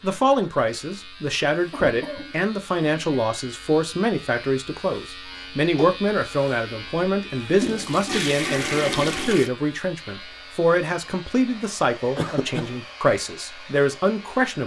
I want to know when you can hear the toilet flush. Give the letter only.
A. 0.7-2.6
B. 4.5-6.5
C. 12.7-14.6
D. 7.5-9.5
D.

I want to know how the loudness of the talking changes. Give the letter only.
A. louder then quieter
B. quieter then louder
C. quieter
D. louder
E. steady
E.